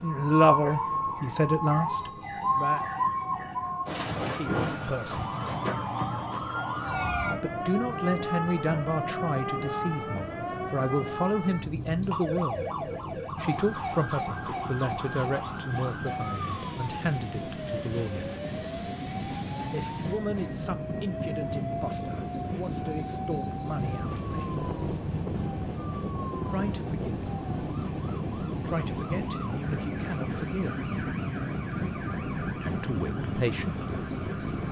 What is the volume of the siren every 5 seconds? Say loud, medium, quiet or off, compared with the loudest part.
loud, loud, medium, medium, medium, quiet, quiet.